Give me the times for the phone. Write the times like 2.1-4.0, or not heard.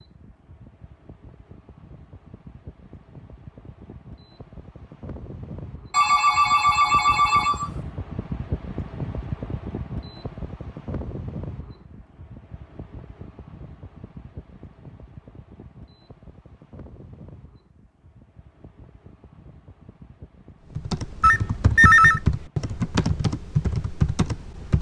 5.9-7.7, 21.2-22.2.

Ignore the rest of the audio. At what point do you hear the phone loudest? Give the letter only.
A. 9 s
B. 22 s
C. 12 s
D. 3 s
B.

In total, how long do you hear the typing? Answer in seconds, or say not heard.
4 s.